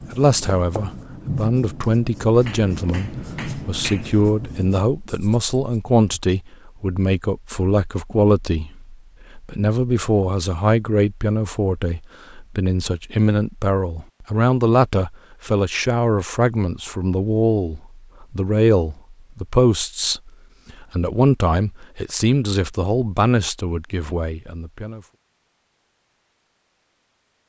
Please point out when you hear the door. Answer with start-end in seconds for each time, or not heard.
not heard.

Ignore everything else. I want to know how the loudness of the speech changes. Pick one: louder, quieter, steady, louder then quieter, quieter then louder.
steady.